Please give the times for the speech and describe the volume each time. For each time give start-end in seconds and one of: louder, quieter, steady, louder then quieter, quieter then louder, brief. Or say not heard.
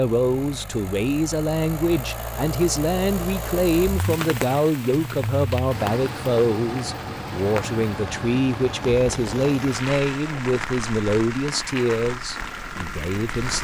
0.0-13.5 steady.